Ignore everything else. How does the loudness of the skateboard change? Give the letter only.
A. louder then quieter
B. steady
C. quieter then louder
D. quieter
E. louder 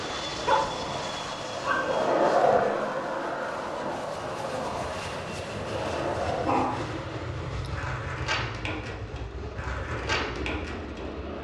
D.